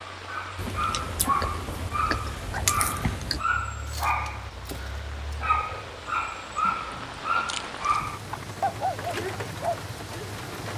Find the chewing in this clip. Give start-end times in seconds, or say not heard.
0.6-3.5, 6.7-8.6.